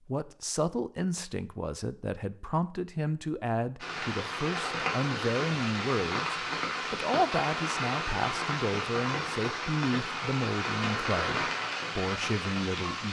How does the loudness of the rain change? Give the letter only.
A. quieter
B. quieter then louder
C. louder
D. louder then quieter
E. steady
E.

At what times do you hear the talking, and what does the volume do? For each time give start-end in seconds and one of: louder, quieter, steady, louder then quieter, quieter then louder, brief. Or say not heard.
0.1-13.0 steady.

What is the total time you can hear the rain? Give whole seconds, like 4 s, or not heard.
9 s.